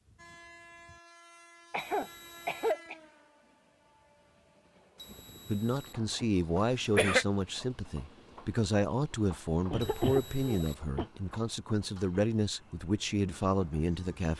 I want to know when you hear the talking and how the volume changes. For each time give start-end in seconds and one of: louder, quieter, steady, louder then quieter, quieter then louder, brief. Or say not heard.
5.5-14.3 steady.